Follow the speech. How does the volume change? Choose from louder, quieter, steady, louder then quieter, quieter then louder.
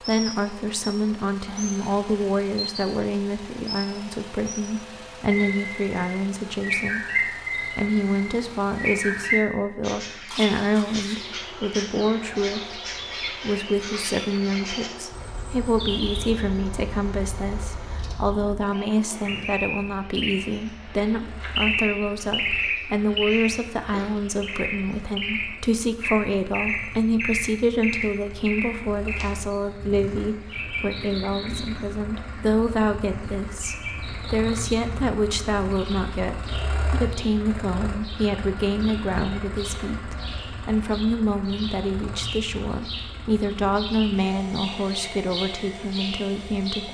steady.